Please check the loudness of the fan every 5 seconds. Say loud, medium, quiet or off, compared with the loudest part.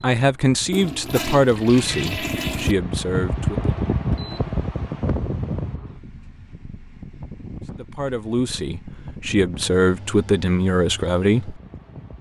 loud, medium, quiet.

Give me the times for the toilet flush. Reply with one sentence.
The toilet flush can be heard from 0.7 to 2.8 s.